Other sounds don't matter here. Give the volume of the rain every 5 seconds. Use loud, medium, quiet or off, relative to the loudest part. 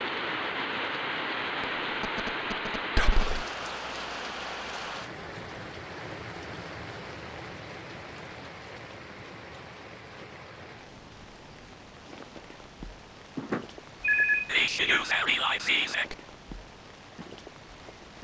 loud, medium, quiet, quiet.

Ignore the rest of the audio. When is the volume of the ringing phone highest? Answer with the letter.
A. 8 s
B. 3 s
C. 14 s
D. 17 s
C.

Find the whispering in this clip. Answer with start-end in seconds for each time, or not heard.
3.0-3.5, 14.4-16.1.